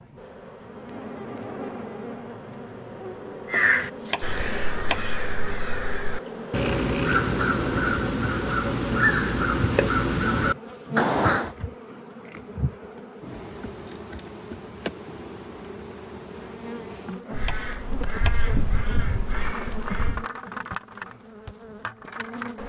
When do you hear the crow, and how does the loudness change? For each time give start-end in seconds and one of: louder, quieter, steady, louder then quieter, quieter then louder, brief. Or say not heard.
3.5-11.6 louder
17.3-20.2 brief.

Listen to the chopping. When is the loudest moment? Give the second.
5 s.